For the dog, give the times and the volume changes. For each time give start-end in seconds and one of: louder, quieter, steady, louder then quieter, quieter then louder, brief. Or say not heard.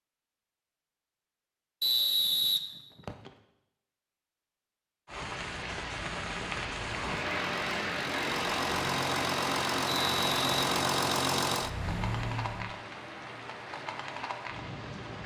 not heard.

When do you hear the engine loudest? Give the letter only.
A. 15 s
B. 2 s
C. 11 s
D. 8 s
C.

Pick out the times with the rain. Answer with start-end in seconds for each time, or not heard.
5.0-15.2.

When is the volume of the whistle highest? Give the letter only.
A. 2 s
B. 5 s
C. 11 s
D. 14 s
A.